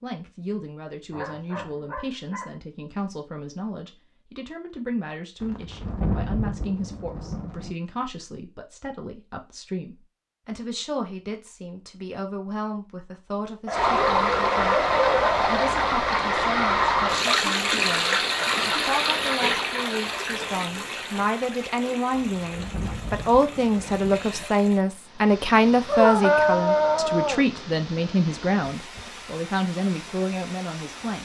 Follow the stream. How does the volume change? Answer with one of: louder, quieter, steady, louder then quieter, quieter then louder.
quieter.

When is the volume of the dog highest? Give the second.
26 s.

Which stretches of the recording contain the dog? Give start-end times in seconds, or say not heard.
1.1-2.5, 13.7-15.7, 25.9-27.4.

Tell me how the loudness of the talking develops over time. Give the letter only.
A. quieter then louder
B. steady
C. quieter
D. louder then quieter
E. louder
E.